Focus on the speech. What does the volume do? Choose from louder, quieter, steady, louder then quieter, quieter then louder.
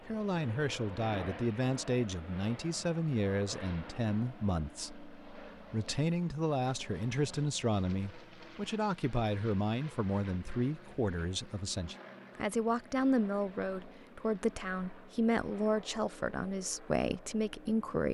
steady.